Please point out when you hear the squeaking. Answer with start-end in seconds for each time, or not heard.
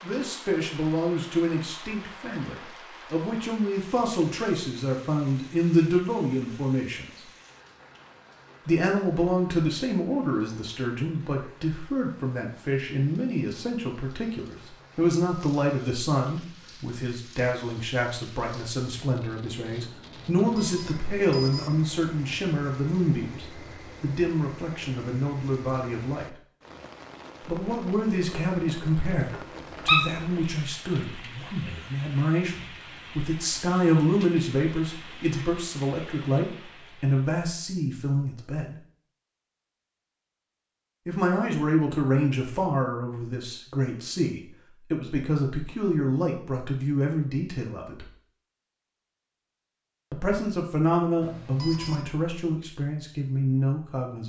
29.1-30.1.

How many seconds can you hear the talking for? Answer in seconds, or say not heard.
47 s.